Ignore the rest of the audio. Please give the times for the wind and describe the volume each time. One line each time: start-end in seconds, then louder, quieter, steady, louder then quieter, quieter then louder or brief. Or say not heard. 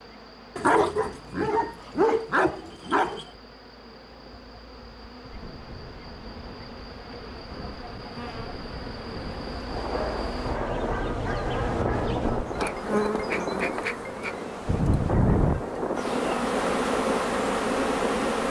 5.3-18.4 louder.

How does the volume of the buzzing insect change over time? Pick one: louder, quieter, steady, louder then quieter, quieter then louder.
louder.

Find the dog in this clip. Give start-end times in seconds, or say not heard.
0.6-3.2, 9.8-12.2.